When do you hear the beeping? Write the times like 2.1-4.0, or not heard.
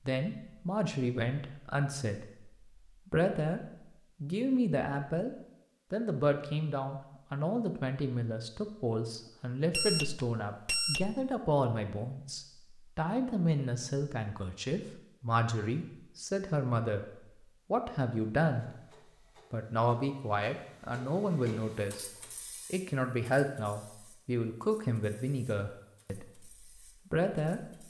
9.7-11.4.